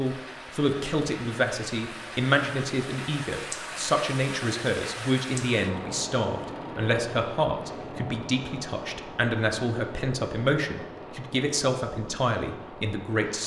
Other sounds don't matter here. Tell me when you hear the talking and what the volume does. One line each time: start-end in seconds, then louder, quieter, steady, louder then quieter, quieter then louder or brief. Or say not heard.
0.0-13.4 steady.